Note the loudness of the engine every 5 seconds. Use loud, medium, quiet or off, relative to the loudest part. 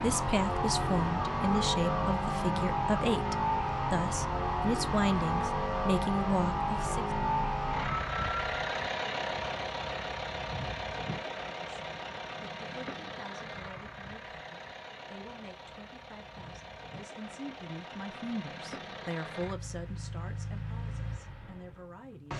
loud, loud, medium, quiet, medium.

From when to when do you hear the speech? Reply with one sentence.
The speech can be heard from 0.0 to 7.0 s and from 11.7 to 22.3 s.